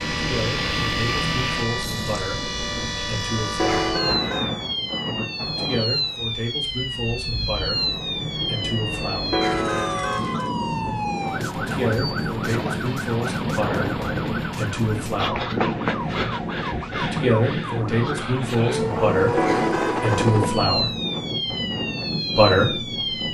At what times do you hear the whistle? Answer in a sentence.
The whistle can't be heard in this clip.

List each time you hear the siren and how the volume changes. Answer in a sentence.
The siren can be heard from 0.0 to 23.2 s, at a steady volume.